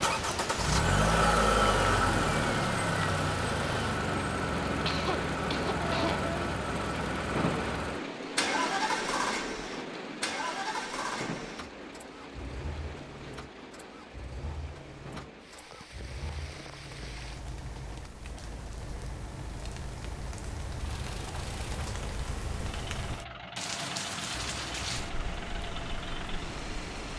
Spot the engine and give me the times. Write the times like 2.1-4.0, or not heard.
0.0-27.1.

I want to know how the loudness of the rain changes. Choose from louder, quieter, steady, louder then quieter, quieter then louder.
quieter then louder.